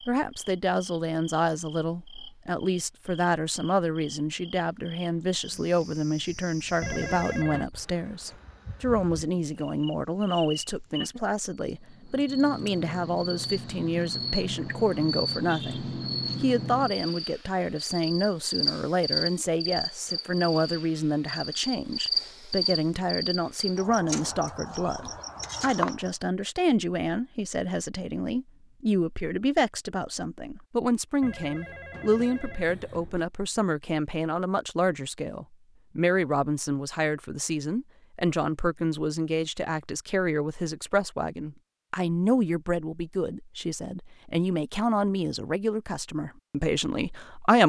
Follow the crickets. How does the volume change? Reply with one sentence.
The volume of the crickets goes up.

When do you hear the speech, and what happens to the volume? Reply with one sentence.
You can hear the speech from 0.1 to 47.6 s, at a steady volume.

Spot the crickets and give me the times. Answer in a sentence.
The crickets can be heard from 0.0 to 26.1 s.